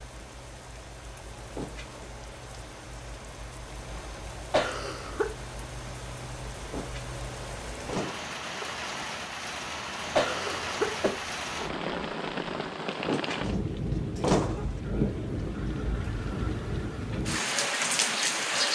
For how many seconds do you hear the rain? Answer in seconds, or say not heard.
19 s.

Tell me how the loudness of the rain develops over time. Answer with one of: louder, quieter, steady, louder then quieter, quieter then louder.
louder.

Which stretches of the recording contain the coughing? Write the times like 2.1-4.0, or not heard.
4.5-5.3, 10.2-11.2.